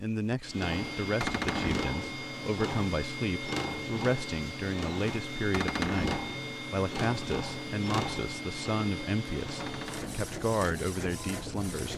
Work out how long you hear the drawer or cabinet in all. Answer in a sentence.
The drawer or cabinet can be heard for 2 seconds in total.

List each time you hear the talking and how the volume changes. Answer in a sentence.
The talking can be heard from 0.0 to 11.9 s, at a steady volume.